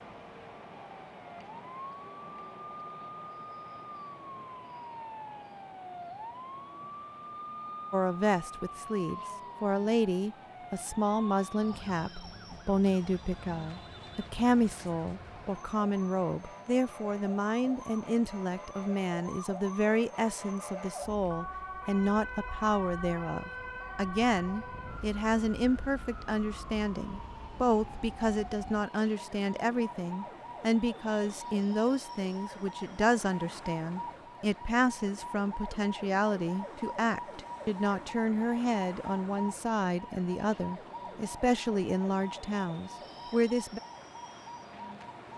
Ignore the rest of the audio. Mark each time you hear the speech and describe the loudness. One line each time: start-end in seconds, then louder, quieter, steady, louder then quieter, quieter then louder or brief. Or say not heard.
7.9-43.8 steady.